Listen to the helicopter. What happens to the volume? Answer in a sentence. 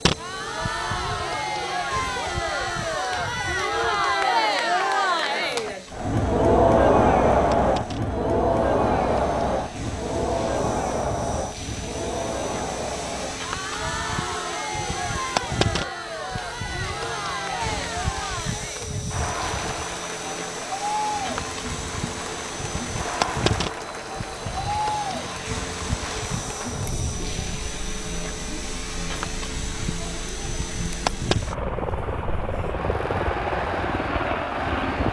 The loudness of the helicopter goes up.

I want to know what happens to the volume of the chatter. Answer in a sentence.
The loudness of the chatter goes down.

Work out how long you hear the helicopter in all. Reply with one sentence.
You can hear the helicopter for 35 seconds altogether.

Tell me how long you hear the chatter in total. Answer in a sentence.
You can hear the chatter for 35 seconds altogether.